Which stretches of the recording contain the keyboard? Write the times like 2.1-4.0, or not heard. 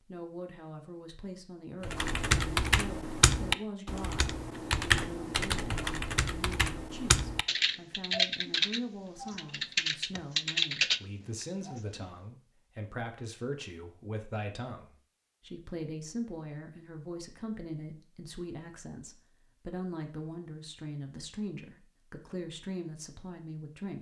1.8-12.1.